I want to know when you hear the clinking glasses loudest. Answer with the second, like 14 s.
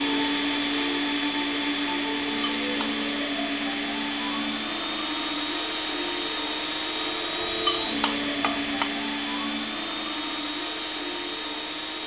8 s.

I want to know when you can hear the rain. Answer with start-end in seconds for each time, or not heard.
not heard.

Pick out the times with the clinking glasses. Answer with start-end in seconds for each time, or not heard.
2.4-3.0, 7.4-8.9.